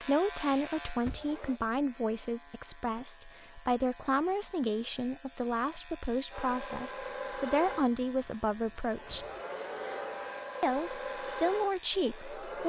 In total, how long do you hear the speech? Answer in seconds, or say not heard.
11 s.